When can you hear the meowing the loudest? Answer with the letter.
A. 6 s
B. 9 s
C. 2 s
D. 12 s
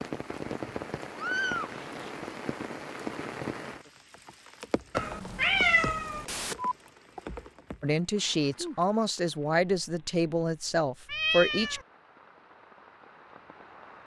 A.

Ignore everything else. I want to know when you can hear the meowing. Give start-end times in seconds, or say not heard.
0.7-2.1, 5.0-6.8, 11.1-11.8.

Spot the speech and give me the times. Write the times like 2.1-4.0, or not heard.
7.8-11.8.